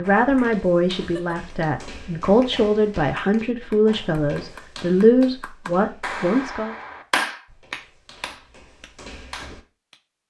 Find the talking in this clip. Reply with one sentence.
You can hear the talking from 0.0 to 6.8 s.